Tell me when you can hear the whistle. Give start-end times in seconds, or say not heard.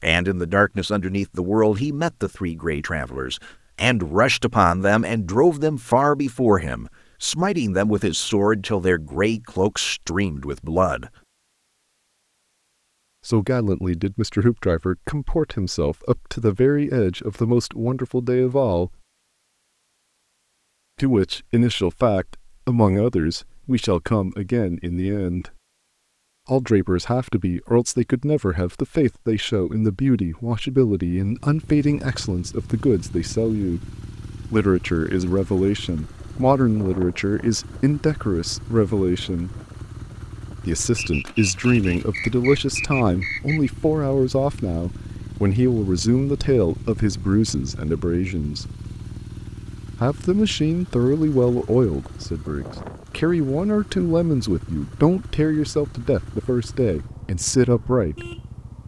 41.0-43.7.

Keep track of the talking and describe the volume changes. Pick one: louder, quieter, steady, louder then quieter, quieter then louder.
steady.